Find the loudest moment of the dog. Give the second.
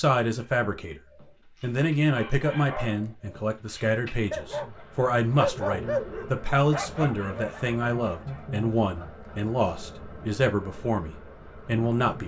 6 s.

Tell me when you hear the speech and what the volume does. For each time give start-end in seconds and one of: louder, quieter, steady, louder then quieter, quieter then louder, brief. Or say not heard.
0.0-1.0 brief
1.6-12.2 steady.